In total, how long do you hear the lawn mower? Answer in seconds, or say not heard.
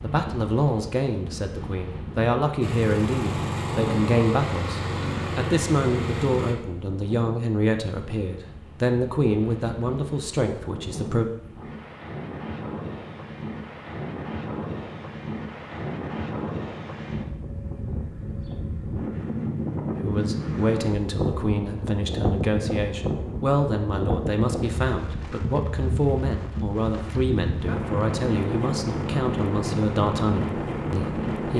4 s.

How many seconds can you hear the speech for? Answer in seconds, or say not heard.
23 s.